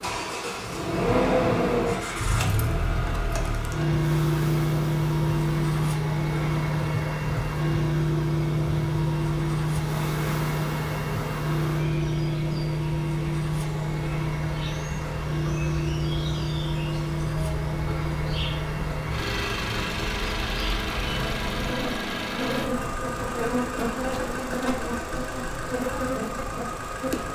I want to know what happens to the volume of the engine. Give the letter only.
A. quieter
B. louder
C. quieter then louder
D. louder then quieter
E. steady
A.